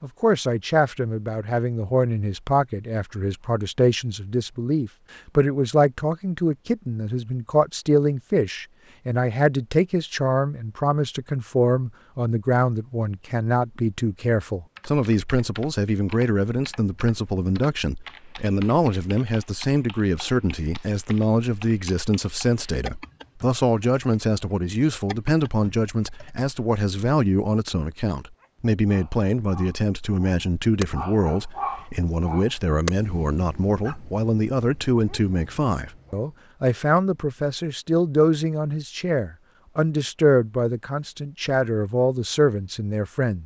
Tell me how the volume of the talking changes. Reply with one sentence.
The loudness of the talking stays about the same.